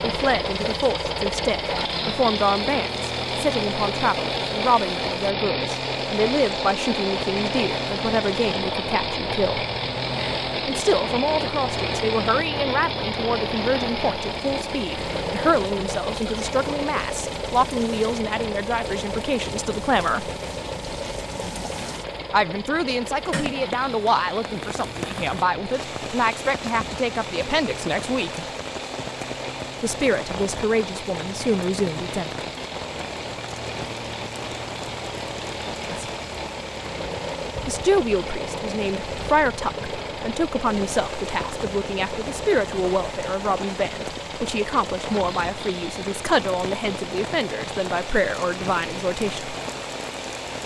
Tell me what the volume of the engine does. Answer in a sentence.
The loudness of the engine goes down.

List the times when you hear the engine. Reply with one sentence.
The engine can be heard from 0.0 to 50.6 s.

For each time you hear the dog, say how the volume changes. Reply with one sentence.
You can't hear the dog here.